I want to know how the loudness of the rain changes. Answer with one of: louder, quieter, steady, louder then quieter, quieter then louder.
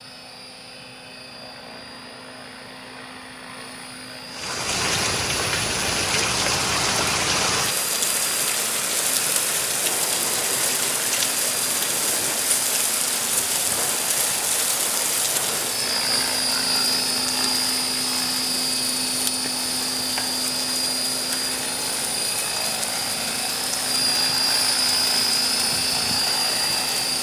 quieter.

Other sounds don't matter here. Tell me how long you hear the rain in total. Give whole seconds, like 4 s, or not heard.
23 s.